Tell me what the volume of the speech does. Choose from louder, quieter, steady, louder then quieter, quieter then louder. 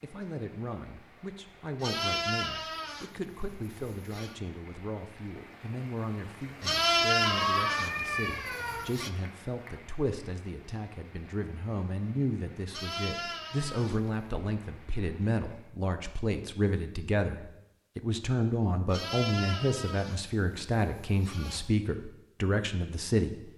louder.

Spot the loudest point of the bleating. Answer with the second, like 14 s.
7 s.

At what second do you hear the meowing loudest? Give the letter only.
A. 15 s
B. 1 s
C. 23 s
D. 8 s
D.